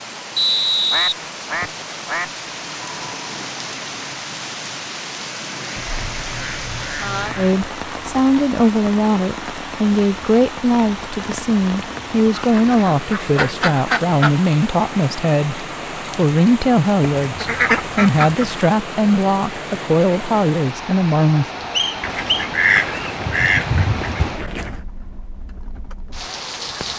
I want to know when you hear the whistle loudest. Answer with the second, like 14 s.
1 s.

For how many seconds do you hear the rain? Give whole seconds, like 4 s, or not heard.
27 s.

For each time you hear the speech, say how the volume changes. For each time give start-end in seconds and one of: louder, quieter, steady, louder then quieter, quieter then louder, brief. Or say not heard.
7.3-21.4 steady.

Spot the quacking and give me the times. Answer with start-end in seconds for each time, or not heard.
0.9-2.3, 5.8-7.6, 12.3-14.3, 17.2-18.4, 22.0-24.8.